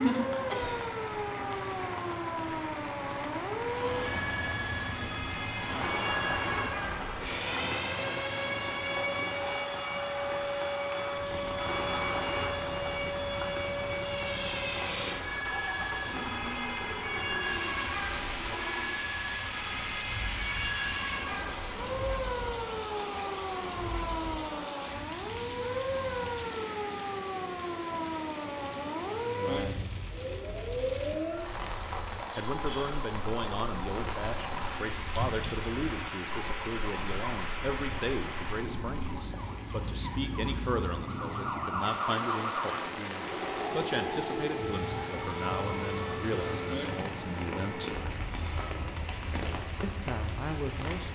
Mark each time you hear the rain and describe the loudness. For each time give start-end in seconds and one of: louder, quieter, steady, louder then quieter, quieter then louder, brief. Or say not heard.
0.0-51.1 steady.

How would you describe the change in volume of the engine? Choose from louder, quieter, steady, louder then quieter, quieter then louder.
quieter.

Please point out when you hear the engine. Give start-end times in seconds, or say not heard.
0.0-24.4.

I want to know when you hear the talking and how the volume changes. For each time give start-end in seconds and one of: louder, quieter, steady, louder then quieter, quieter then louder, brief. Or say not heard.
29.1-30.0 brief
32.4-47.9 steady
49.8-51.1 brief.